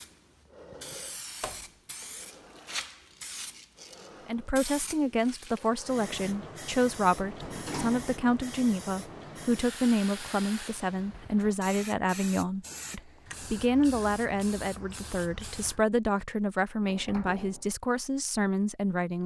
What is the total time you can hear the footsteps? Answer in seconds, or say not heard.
not heard.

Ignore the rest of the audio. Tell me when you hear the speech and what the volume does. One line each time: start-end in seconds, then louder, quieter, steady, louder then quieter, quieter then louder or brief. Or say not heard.
4.2-19.2 steady.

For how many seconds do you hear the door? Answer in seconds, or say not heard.
2 s.